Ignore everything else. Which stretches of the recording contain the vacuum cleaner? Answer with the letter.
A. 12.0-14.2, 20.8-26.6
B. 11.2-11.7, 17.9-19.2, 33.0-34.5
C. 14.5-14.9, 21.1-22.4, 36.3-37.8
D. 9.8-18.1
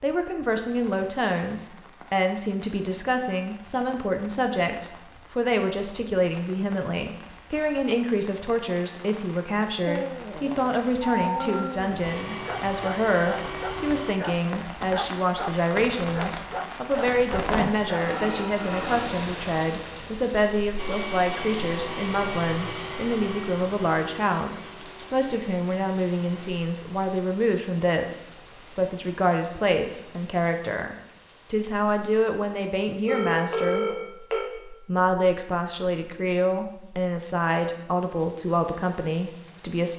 A.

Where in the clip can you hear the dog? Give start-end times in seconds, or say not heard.
9.8-18.1.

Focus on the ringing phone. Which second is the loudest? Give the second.
34 s.